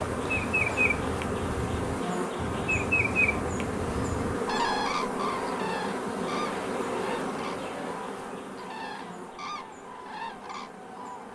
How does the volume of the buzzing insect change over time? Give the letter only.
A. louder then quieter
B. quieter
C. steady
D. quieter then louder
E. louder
B.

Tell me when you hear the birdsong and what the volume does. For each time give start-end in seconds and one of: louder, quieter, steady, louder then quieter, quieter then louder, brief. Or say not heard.
0.0-11.2 quieter.